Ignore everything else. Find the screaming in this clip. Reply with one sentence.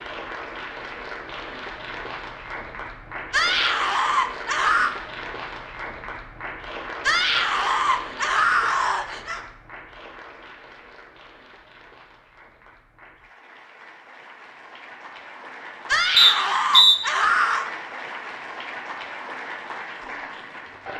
You can hear the screaming from 3.3 to 4.9 s, from 7.0 to 9.4 s and from 15.8 to 17.6 s.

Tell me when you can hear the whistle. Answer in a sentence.
You can hear the whistle from 16.1 to 17.0 s.